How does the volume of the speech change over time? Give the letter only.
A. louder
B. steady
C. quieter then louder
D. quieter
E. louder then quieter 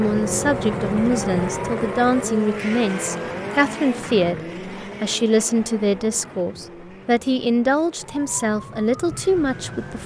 B.